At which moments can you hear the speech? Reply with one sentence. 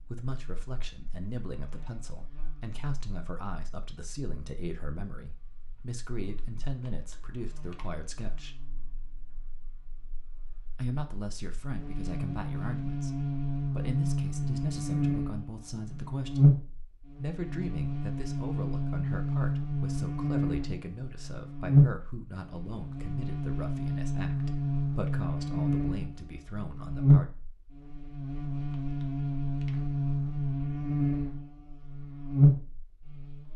The speech can be heard from 0.0 to 8.6 s, from 10.8 to 16.5 s and from 17.1 to 27.2 s.